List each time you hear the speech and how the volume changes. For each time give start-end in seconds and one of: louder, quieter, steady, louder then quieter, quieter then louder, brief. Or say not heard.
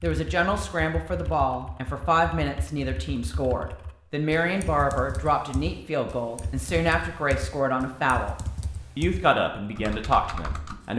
0.0-8.3 steady
8.9-10.9 brief.